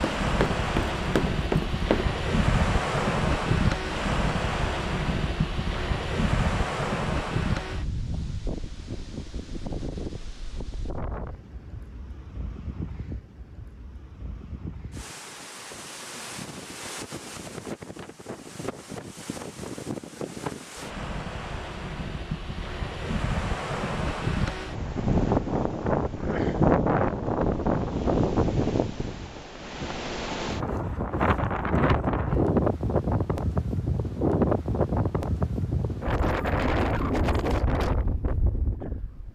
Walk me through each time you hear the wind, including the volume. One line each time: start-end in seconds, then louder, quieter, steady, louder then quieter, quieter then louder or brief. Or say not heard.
0.0-39.3 quieter then louder.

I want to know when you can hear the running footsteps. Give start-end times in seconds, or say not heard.
0.0-2.0.